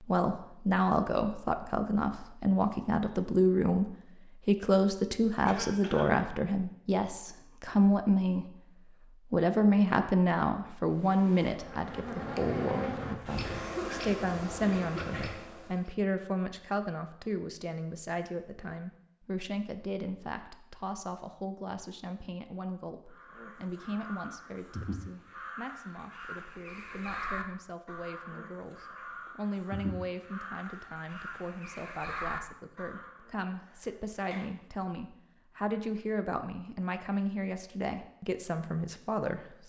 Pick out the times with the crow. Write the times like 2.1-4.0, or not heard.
23.1-33.3.